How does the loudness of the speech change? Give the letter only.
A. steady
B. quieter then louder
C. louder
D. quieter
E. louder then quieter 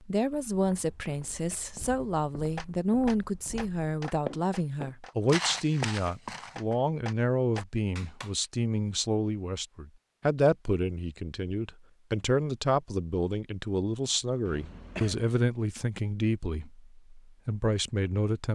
A.